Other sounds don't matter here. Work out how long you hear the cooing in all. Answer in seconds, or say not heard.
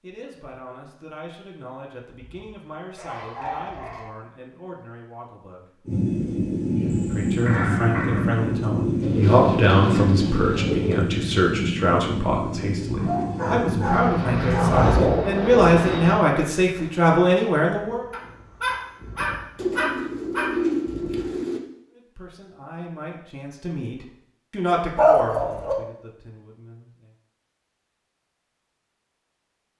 4 s.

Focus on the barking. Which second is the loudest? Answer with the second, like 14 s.
25 s.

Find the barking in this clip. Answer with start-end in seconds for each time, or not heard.
2.4-4.1, 6.9-8.3, 12.9-15.1, 18.1-20.5, 24.9-25.8.